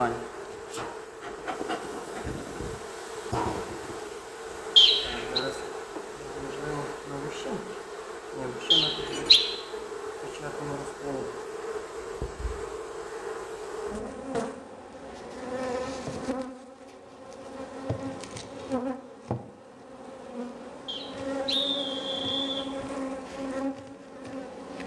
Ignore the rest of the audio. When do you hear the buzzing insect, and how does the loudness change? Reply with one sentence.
You can hear the buzzing insect from 0.0 to 24.8 s, at a steady volume.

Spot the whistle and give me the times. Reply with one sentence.
The whistle can be heard from 4.8 to 5.4 s, from 8.7 to 9.4 s and from 20.9 to 22.7 s.